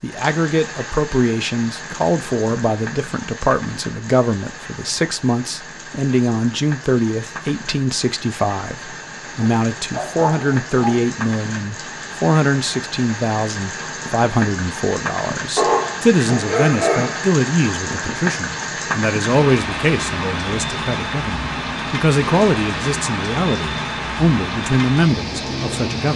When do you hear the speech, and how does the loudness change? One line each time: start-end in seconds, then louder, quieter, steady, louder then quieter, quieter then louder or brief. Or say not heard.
0.0-26.1 steady.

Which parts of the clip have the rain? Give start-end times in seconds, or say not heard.
0.0-26.1.